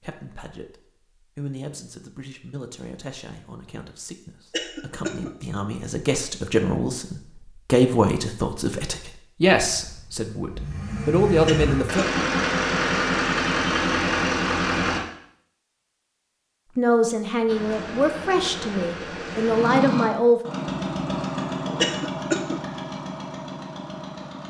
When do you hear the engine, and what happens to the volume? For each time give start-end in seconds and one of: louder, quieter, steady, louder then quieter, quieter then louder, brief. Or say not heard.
9.7-15.0 louder
17.4-24.4 louder then quieter.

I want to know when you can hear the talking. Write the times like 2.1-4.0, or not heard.
0.0-12.1, 16.8-20.4.